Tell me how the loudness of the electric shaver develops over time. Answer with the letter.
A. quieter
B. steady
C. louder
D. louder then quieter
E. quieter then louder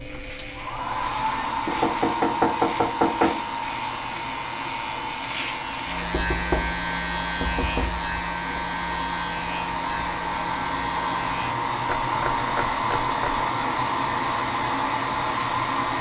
D.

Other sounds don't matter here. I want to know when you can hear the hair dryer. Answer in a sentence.
The hair dryer can be heard from 0.0 to 15.9 s.